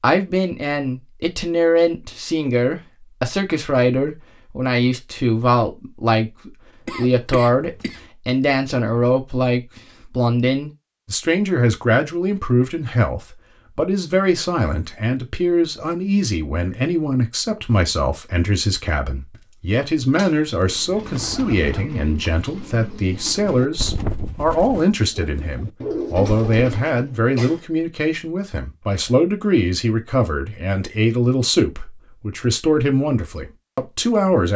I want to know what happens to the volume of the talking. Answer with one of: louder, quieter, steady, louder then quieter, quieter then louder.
steady.